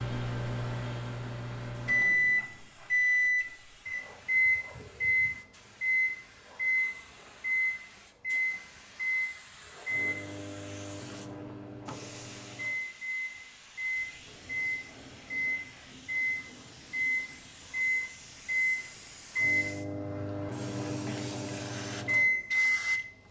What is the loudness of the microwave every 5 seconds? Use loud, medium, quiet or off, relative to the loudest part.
loud, loud, medium, loud, loud.